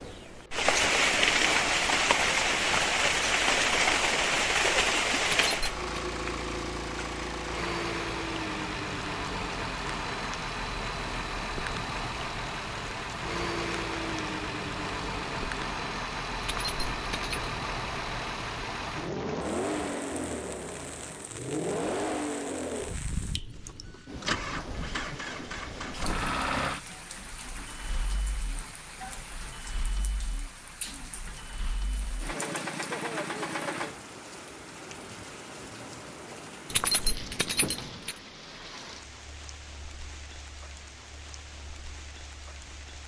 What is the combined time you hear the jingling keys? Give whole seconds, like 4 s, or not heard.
3 s.